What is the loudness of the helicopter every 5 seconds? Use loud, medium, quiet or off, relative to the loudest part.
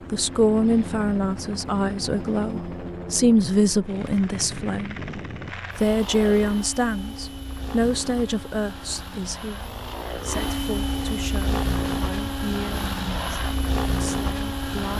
medium, medium, loud.